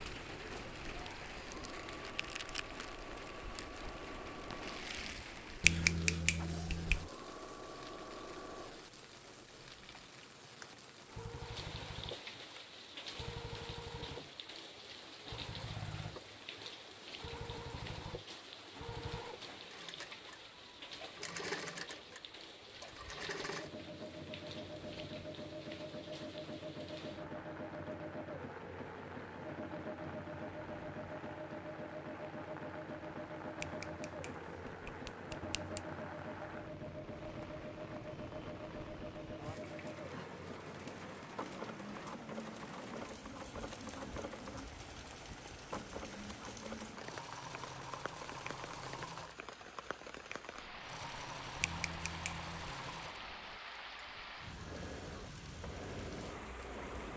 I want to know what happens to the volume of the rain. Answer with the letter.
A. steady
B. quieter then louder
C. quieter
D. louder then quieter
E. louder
A.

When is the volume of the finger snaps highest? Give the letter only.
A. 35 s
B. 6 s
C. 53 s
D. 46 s
B.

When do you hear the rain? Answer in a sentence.
You can hear the rain from 0.0 to 57.1 s.